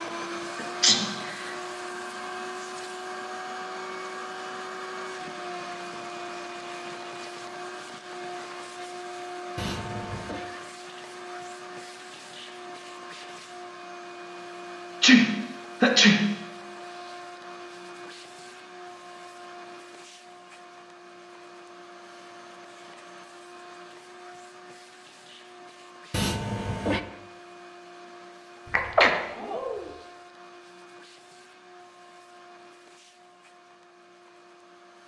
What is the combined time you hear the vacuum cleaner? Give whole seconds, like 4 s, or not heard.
35 s.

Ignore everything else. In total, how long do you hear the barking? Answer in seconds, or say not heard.
not heard.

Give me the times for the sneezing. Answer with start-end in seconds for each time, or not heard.
0.6-1.1, 15.0-16.4, 28.7-29.9.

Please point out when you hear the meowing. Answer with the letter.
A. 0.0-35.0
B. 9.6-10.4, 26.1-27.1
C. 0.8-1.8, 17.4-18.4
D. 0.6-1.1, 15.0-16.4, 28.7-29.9
B.